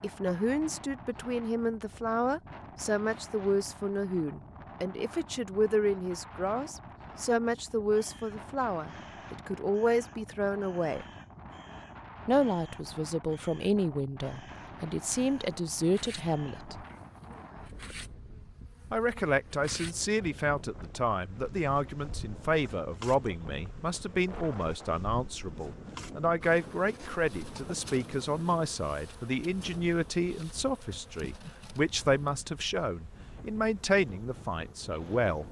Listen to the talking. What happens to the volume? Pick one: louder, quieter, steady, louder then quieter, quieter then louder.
steady.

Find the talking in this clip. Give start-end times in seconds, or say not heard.
0.0-11.1, 12.2-16.9, 18.9-35.4.